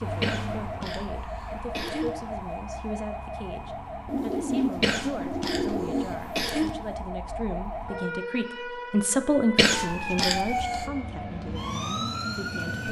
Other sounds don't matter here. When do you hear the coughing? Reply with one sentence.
The coughing can be heard from 0.2 to 2.1 s, from 4.8 to 6.8 s and from 9.6 to 10.8 s.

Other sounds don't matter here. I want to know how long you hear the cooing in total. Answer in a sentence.
You can hear the cooing for 2 seconds altogether.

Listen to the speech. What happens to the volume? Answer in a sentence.
The volume of the speech goes up, then down.